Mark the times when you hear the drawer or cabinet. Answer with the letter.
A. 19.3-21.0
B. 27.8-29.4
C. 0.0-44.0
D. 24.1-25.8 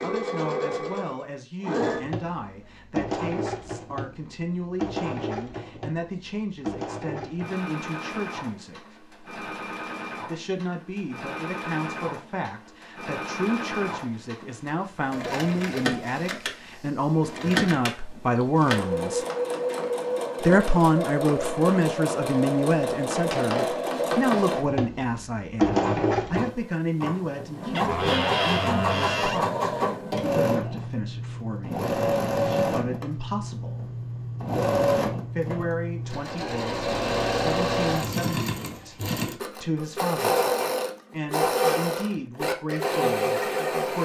B.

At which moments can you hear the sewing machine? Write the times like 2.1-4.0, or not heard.
0.0-44.0.